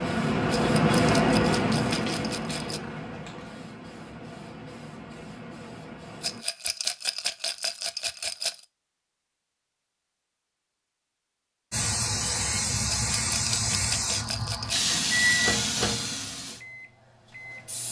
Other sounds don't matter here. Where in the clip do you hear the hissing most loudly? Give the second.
1 s.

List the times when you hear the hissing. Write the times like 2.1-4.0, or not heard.
0.0-6.5, 11.7-17.8.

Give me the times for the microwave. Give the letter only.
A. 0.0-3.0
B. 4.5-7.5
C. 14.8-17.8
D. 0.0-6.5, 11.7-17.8
C.